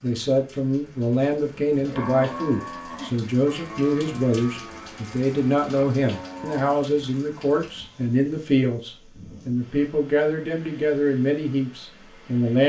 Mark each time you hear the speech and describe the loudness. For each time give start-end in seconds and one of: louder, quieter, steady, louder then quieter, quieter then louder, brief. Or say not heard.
0.0-12.6 steady.